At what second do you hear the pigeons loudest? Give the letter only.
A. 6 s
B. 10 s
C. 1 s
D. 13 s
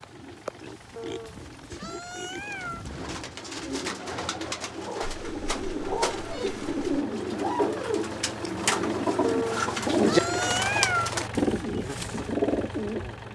B.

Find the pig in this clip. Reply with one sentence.
The pig can be heard from 0.0 to 3.9 s.